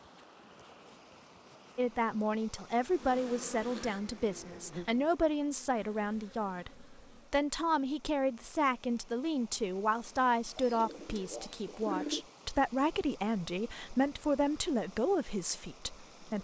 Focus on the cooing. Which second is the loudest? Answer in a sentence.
The volume of the cooing peaks at 12 seconds.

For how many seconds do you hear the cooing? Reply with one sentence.
You can hear the cooing for 2 seconds altogether.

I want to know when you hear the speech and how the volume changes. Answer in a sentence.
You can hear the speech from 1.8 to 16.3 s, at a steady volume.